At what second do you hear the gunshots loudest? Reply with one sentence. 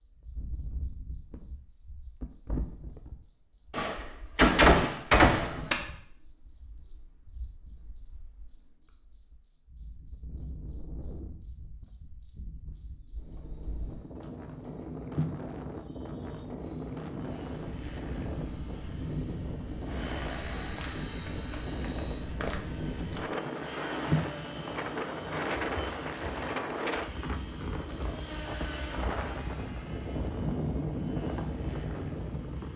The loudest moment of the gunshots is at 5 seconds.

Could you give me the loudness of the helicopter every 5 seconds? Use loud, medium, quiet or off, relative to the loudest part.
off, off, off, loud, loud, loud, loud.